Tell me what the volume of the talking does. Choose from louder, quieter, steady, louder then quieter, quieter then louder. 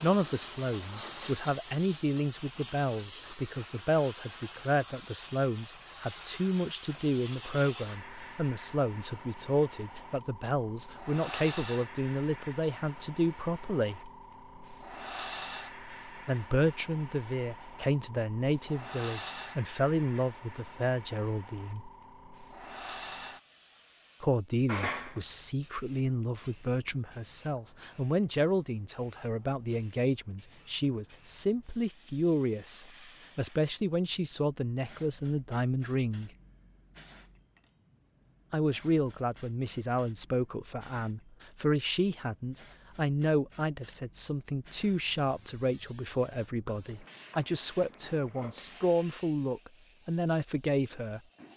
steady.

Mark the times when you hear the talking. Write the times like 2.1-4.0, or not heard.
0.0-14.1, 16.2-21.9, 24.2-36.3, 38.5-51.2.